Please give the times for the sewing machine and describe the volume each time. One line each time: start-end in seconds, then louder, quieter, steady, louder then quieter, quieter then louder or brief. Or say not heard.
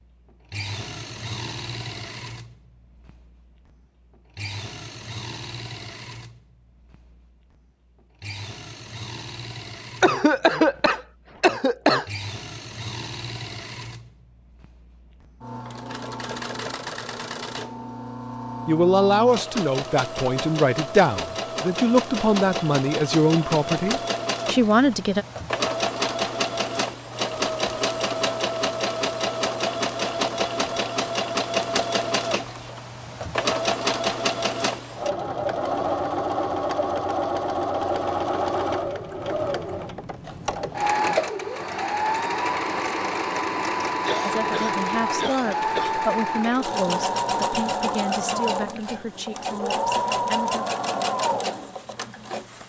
0.0-52.6 louder.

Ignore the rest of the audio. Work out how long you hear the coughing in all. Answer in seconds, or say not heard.
4 s.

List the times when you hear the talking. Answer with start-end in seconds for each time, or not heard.
18.6-25.2, 44.2-50.6.